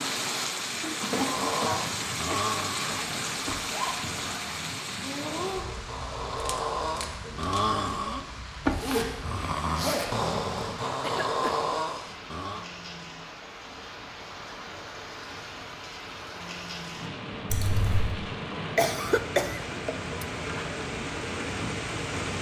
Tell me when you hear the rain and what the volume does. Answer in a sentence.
The rain can be heard from 0.0 to 22.3 s, getting quieter then louder.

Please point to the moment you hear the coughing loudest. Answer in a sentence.
The loudest moment of the coughing is at 19 seconds.